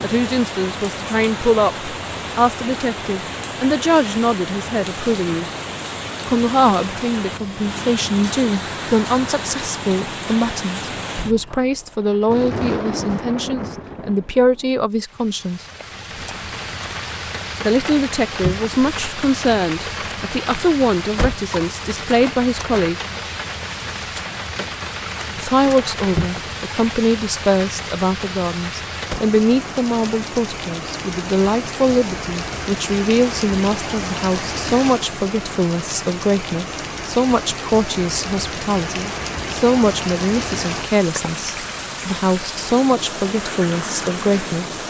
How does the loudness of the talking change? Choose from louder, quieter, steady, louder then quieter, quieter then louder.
steady.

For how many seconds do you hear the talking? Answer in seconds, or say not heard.
40 s.